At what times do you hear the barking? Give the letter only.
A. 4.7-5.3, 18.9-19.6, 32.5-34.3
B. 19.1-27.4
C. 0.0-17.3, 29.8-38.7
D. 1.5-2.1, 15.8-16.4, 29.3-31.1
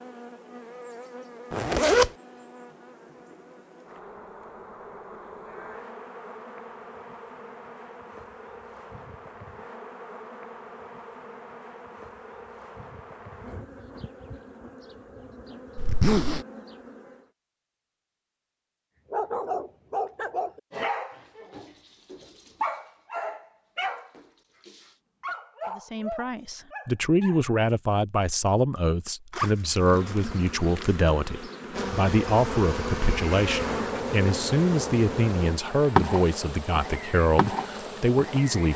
B.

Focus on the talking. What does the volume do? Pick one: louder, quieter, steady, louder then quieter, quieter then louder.
steady.